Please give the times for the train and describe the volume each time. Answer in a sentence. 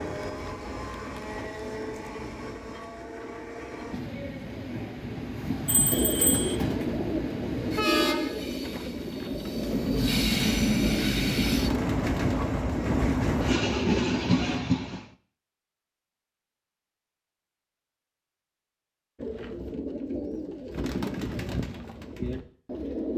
The train can be heard from 0.0 to 15.1 s, getting louder.